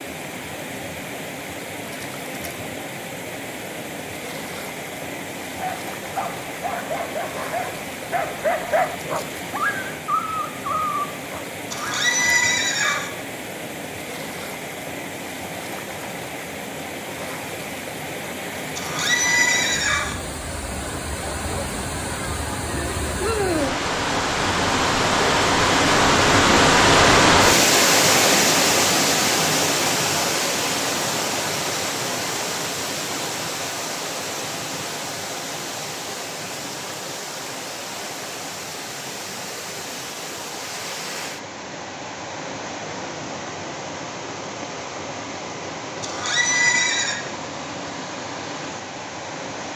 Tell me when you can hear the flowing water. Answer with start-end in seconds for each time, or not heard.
0.0-49.7.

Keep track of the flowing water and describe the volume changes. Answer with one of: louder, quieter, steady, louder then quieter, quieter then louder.
louder then quieter.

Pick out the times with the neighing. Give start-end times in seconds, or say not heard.
11.7-13.1, 18.8-20.1, 46.0-47.1.